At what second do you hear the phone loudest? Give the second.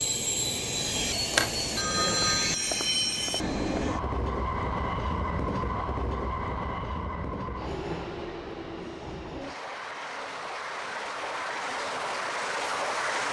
2 s.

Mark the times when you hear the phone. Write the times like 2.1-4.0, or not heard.
1.8-3.9.